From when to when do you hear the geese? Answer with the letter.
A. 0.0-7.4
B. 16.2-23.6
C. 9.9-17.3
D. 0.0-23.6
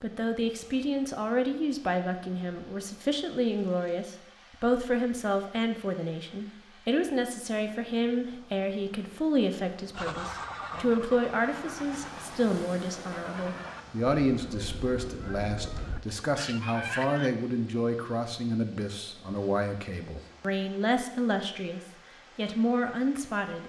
C.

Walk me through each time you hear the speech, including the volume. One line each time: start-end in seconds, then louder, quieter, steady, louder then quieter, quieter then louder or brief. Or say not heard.
0.0-23.6 steady.